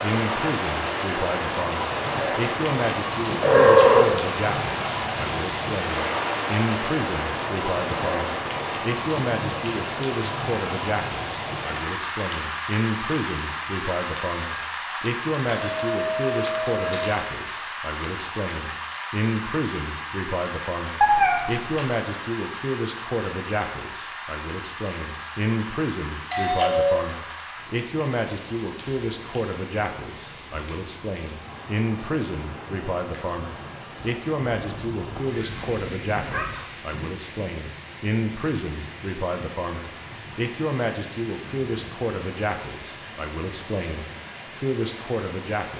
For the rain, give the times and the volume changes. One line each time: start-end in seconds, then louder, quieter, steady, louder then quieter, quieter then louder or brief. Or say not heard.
0.0-45.7 quieter.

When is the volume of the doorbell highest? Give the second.
27 s.